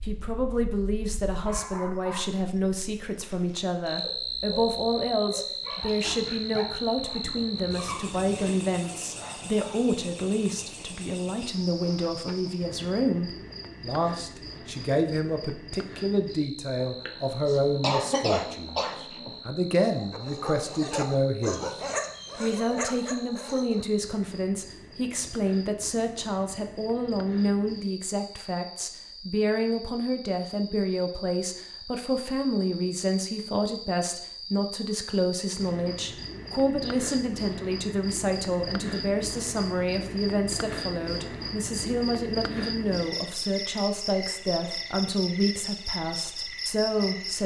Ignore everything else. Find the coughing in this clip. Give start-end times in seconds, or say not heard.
16.8-19.4.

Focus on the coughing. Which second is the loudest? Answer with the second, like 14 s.
18 s.